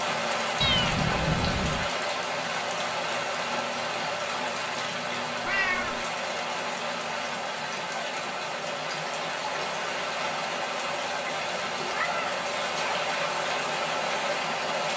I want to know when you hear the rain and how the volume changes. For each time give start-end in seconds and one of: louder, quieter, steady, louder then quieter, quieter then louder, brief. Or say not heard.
0.0-14.9 steady.